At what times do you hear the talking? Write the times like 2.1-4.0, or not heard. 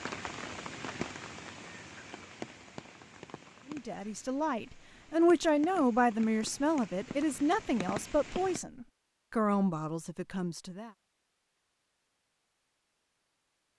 3.6-10.9.